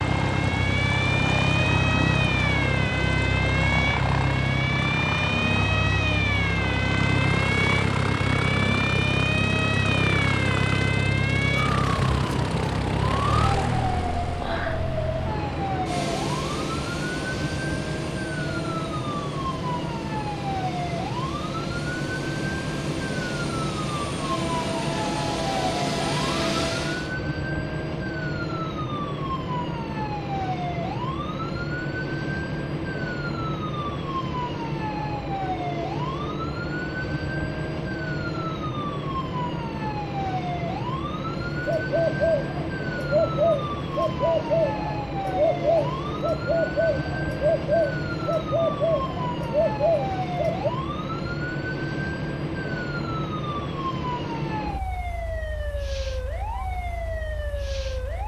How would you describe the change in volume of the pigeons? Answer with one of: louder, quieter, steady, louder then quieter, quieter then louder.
steady.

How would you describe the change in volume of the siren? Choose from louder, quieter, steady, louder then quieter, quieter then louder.
steady.